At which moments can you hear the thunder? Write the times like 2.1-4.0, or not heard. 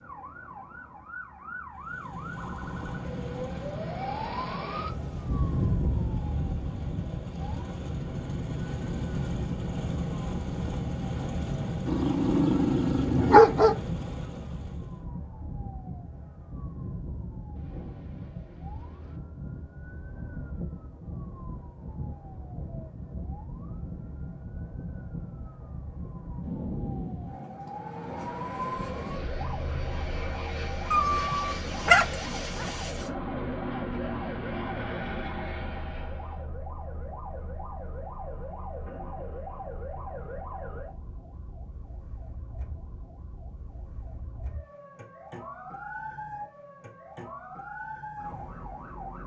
17.6-19.1, 26.4-27.5.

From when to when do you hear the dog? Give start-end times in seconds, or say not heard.
11.8-13.8, 30.9-32.7.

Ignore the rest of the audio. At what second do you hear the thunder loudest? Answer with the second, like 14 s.
27 s.